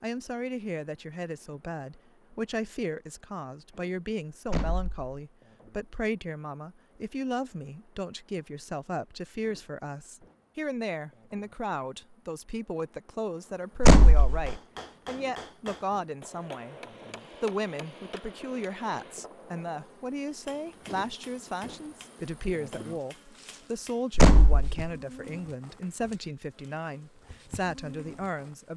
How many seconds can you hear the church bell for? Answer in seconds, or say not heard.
not heard.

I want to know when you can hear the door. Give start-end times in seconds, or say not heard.
4.5-5.0, 13.8-14.6, 24.1-24.9.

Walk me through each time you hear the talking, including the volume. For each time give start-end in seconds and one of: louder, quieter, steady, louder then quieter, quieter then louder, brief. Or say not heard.
0.0-16.8 steady
17.4-28.7 steady.